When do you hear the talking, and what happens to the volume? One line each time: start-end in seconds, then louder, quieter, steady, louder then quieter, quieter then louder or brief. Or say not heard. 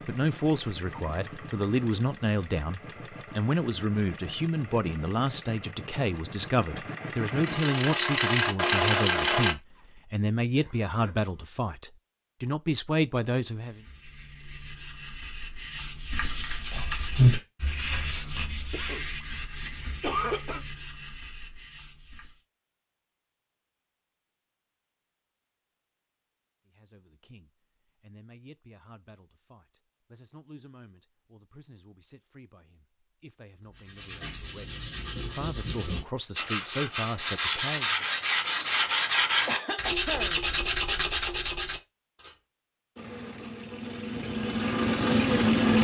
0.0-13.8 steady
26.6-38.0 louder.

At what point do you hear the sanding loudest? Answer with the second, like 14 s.
17 s.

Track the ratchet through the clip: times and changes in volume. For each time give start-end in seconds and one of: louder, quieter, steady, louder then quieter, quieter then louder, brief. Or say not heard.
not heard.